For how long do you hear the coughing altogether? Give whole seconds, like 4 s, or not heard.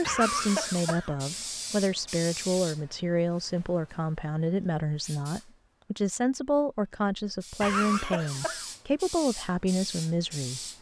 2 s.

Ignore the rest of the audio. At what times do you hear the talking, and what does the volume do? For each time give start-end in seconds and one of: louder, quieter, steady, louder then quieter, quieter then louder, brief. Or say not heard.
0.0-10.6 steady.